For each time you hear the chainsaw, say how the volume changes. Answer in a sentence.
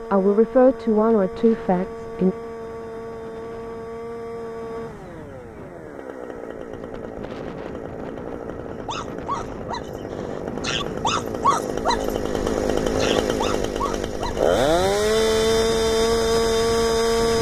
You can hear the chainsaw from 0.0 to 17.3 s, getting louder.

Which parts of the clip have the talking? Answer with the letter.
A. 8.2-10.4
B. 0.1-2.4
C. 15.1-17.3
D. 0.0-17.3
B.